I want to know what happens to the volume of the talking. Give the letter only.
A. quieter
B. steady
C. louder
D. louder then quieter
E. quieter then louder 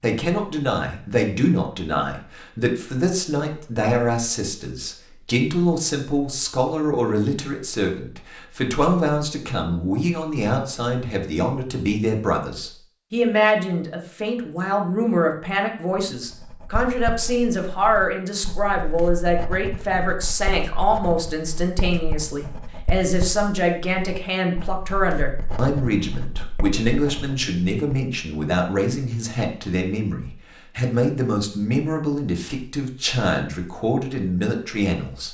B.